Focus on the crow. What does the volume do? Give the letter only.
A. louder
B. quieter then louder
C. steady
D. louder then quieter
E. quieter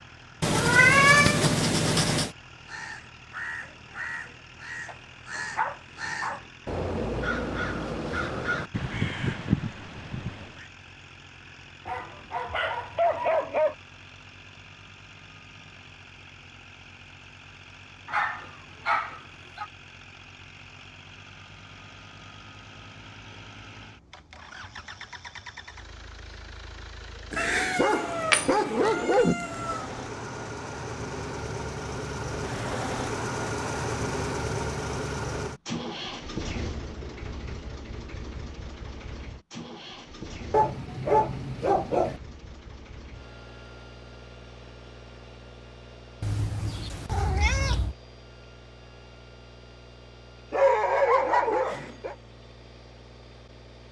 A.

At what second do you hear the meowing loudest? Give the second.
1 s.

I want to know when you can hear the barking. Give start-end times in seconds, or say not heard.
4.8-6.5, 11.8-13.8, 18.1-19.6, 27.8-29.4, 40.5-42.2, 50.5-52.1.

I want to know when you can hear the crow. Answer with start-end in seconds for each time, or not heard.
2.6-10.7.